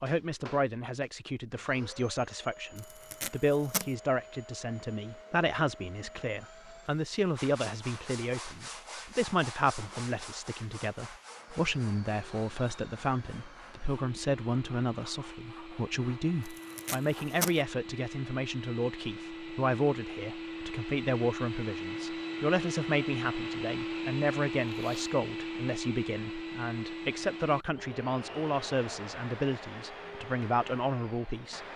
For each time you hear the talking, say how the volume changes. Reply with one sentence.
You can hear the talking from 0.0 to 31.6 s, at a steady volume.